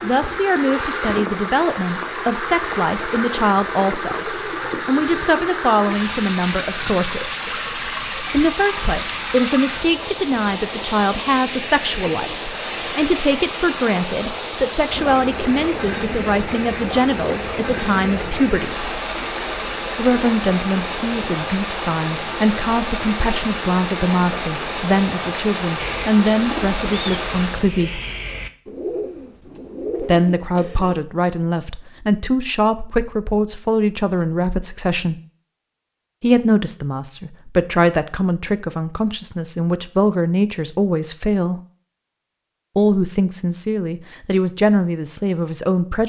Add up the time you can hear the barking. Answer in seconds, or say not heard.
not heard.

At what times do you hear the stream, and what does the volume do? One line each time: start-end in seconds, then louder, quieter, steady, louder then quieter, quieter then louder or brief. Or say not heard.
0.0-27.8 steady.